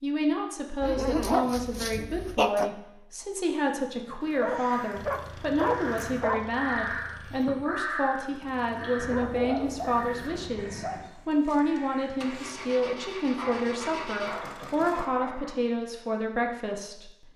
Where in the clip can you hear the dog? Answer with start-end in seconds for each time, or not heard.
0.8-2.7, 4.4-6.5, 8.9-11.1, 13.3-15.6.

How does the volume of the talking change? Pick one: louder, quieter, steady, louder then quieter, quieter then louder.
steady.